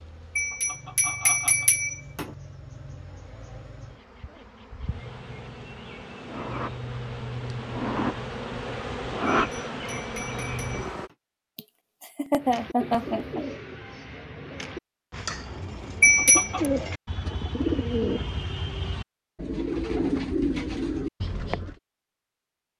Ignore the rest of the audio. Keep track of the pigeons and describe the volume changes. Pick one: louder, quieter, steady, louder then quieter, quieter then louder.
louder.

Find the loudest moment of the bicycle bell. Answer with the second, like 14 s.
16 s.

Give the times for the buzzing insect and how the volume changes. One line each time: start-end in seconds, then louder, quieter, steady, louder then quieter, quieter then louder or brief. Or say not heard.
0.0-11.1 louder.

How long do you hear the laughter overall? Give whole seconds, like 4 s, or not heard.
2 s.